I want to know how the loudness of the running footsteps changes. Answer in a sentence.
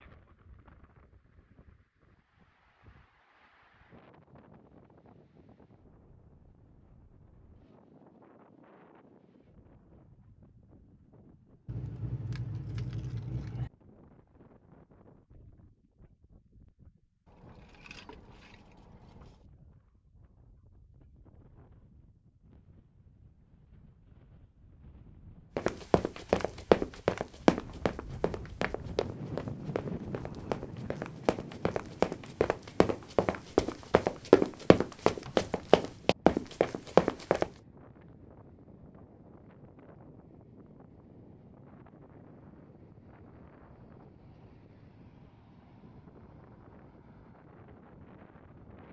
The volume of the running footsteps goes down, then up.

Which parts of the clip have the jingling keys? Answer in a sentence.
You can hear the jingling keys from 11.7 to 13.7 s, from 17.2 to 19.4 s and from 35.2 to 35.9 s.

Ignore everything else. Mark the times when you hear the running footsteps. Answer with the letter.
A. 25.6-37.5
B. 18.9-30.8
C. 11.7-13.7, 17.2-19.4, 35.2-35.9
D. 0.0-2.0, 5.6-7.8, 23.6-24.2
A.